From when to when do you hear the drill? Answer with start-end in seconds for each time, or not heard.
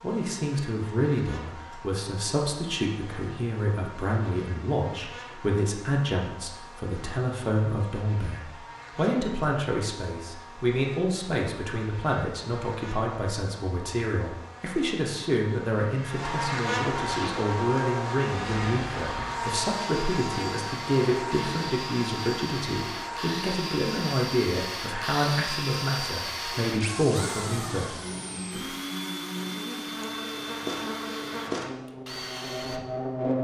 17.0-33.2.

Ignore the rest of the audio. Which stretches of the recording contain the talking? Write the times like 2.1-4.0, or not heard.
0.0-28.6.